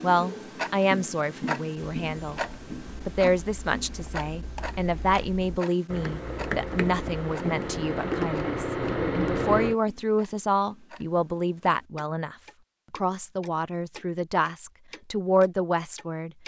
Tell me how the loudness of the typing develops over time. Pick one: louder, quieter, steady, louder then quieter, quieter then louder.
louder.